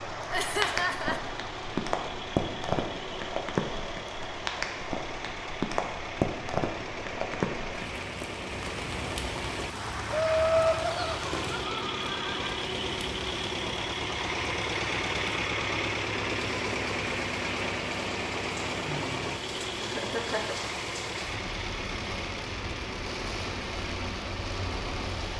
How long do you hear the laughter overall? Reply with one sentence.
You can hear the laughter for 4 seconds altogether.